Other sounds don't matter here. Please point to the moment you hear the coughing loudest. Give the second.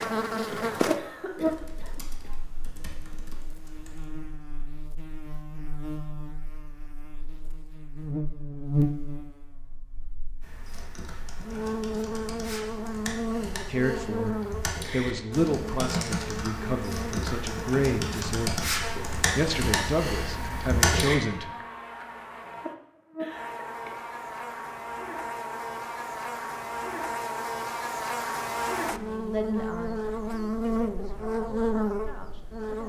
1 s.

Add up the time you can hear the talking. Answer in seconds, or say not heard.
11 s.